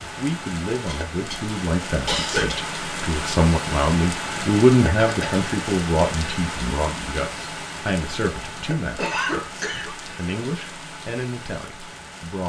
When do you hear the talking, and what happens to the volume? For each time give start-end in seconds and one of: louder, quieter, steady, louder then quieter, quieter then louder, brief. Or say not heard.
0.0-12.4 louder then quieter.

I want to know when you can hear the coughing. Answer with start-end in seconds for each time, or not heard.
0.8-2.5, 5.0-5.4, 8.9-9.9.